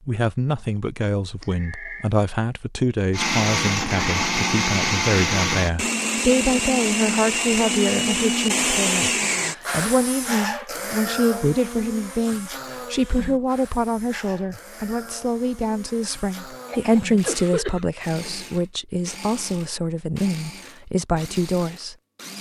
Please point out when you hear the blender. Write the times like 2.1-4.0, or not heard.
3.1-22.3.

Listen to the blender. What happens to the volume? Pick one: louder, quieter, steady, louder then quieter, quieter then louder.
quieter.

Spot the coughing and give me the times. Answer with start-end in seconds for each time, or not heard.
1.4-2.1, 16.6-18.4.